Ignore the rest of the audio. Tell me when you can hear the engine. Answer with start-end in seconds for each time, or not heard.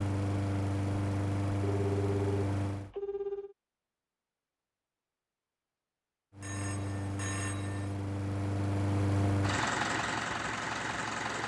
0.0-2.9, 6.3-11.4.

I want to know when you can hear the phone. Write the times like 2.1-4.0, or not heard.
1.6-3.5, 6.4-8.0.